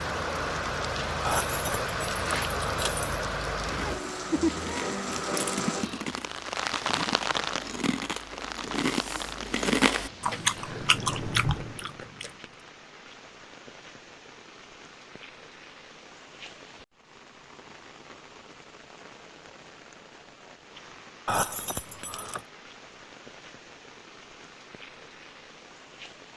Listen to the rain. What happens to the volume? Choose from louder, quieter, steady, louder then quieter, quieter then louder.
quieter.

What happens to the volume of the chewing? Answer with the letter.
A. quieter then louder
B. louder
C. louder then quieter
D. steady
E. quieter
B.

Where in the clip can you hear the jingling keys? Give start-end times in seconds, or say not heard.
1.2-3.1, 21.2-22.4.